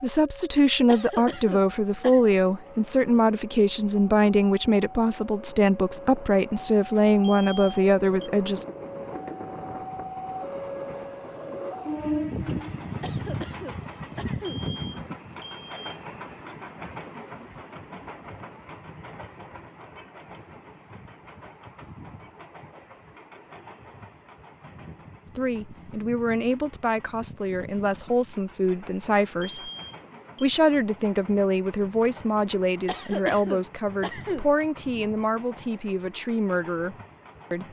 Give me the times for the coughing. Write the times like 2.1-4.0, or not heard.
0.8-2.2, 13.0-14.6, 32.9-34.5.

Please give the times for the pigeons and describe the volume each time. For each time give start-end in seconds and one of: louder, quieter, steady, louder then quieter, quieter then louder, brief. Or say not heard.
not heard.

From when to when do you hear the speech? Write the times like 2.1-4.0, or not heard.
0.0-8.7, 25.2-29.7, 30.4-37.6.